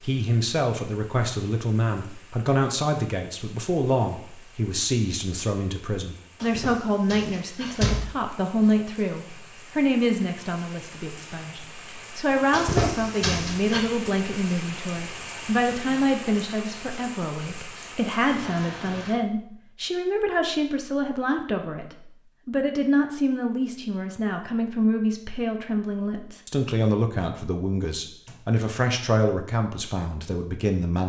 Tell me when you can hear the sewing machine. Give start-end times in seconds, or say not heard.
not heard.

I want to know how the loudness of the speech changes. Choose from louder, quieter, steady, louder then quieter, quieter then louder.
steady.